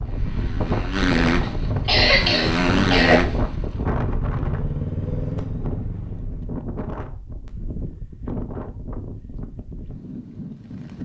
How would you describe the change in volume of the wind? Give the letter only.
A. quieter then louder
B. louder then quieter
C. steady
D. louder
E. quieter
E.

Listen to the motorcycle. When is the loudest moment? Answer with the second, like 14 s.
3 s.